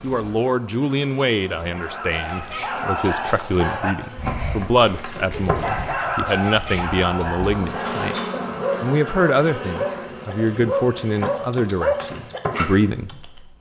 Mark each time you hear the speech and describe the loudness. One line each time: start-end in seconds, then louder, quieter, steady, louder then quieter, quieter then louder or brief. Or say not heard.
0.0-13.5 steady.